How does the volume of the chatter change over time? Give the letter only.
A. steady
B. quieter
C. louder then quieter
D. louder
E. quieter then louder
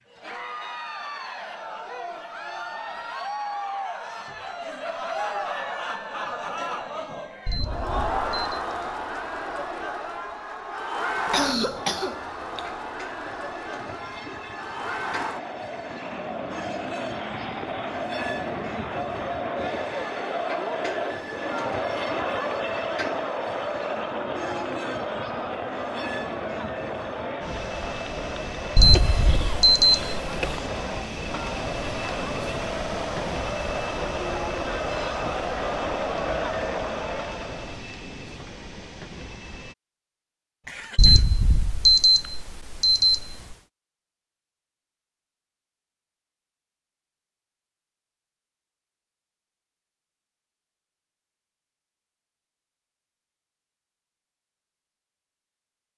A.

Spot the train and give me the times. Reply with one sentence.
The train can be heard from 11.4 to 39.8 s.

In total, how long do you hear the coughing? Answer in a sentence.
You can hear the coughing for 4 seconds altogether.